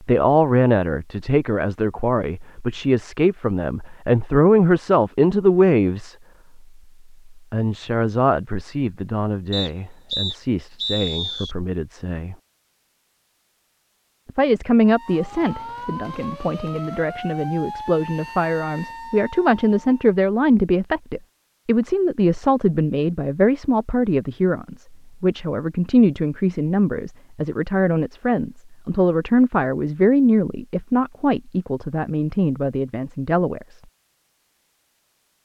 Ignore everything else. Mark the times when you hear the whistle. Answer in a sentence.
The whistle can be heard from 9.5 to 11.6 s.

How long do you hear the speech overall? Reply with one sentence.
The speech can be heard for 31 seconds in total.